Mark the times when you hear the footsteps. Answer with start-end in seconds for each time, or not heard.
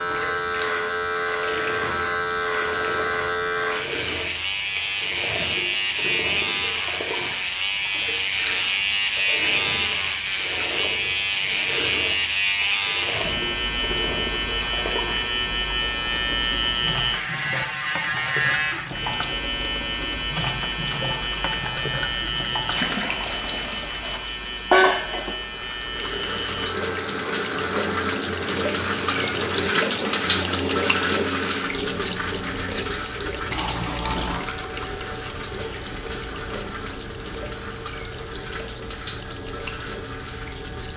not heard.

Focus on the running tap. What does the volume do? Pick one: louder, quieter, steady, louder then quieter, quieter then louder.
louder then quieter.